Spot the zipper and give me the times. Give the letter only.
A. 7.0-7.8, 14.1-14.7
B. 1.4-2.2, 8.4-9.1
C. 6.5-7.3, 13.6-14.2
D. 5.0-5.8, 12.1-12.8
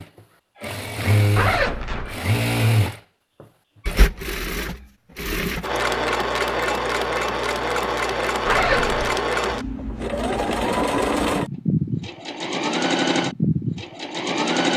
B.